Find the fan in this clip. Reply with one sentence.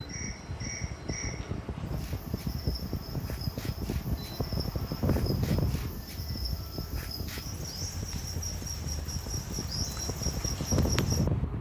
The fan can be heard from 0.0 to 11.5 s.